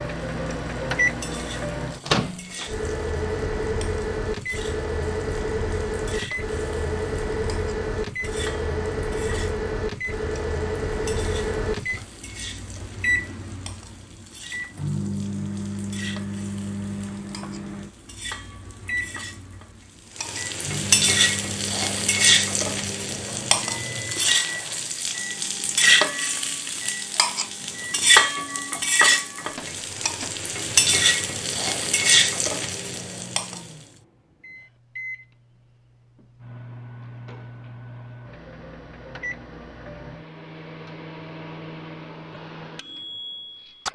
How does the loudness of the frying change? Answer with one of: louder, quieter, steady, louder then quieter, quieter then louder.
louder.